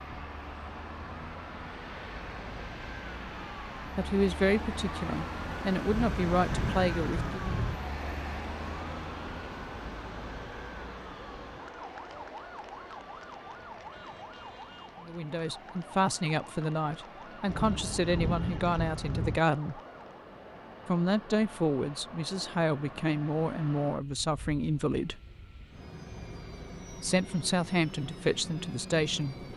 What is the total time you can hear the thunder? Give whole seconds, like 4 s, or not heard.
4 s.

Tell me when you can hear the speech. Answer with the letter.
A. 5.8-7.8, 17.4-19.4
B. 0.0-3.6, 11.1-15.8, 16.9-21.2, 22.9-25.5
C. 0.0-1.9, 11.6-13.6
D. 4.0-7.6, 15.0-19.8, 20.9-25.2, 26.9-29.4
D.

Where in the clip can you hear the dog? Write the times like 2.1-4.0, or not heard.
not heard.